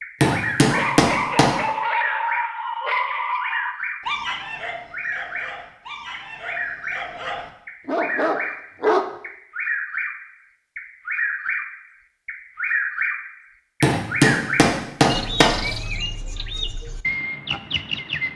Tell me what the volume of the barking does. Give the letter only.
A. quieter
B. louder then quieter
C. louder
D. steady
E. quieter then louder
E.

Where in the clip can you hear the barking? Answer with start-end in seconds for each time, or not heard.
0.3-9.2.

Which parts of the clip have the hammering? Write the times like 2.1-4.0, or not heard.
0.2-1.6, 13.8-15.8.